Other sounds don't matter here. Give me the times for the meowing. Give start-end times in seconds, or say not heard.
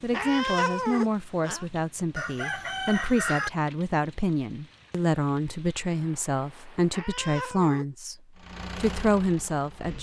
0.1-1.6, 6.9-7.8.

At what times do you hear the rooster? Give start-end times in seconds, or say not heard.
2.1-3.5.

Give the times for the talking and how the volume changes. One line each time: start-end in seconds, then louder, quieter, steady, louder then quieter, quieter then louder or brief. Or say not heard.
0.0-8.2 steady
8.8-9.9 brief.